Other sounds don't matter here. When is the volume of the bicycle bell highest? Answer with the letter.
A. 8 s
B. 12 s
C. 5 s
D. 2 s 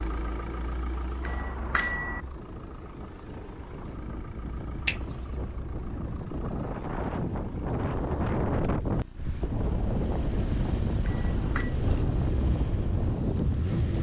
C.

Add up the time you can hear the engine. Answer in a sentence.
You can hear the engine for 14 seconds altogether.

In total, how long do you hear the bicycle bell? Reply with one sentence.
The bicycle bell can be heard for 2 seconds in total.